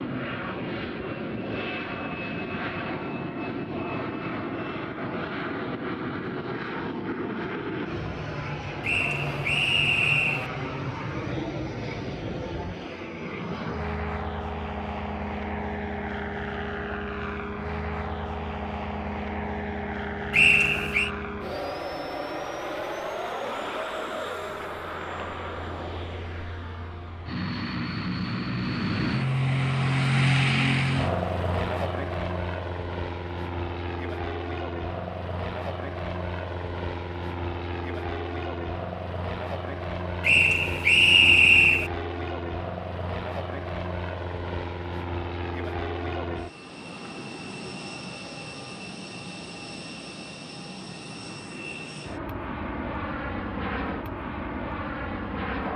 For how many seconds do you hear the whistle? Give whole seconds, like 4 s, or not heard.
4 s.